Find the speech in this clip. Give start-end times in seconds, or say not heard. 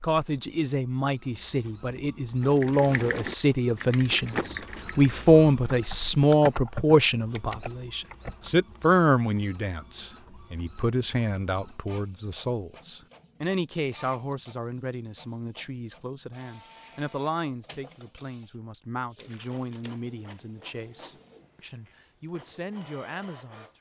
0.0-23.7.